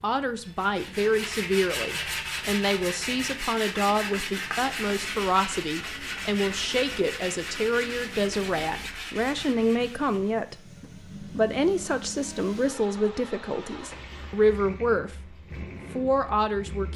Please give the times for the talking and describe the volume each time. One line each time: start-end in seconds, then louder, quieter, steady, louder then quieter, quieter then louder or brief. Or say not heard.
0.0-15.3 steady
15.9-16.9 brief.